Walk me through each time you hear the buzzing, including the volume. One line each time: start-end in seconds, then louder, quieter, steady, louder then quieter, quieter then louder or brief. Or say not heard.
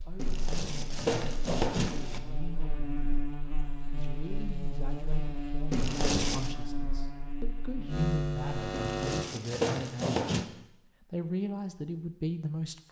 0.0-9.2 louder.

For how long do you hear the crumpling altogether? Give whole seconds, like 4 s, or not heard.
5 s.